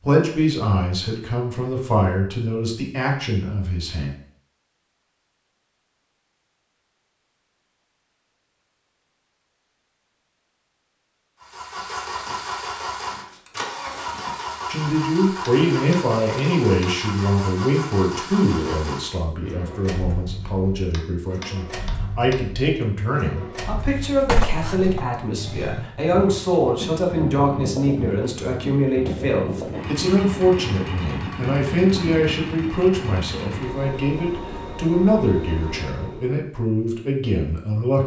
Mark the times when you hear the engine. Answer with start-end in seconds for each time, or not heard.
11.4-36.3.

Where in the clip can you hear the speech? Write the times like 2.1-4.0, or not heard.
0.0-4.1, 14.7-38.0.